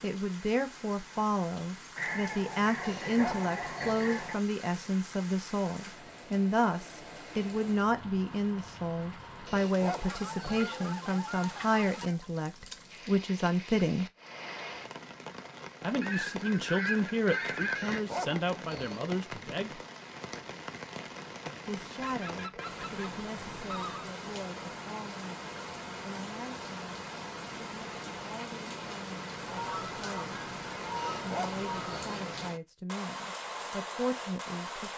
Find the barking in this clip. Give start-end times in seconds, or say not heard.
2.8-4.2, 9.4-10.8, 17.8-19.0, 30.9-32.2.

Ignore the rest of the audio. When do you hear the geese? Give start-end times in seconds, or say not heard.
1.9-4.4, 10.1-12.2, 16.0-18.0, 22.0-24.1, 29.4-32.0.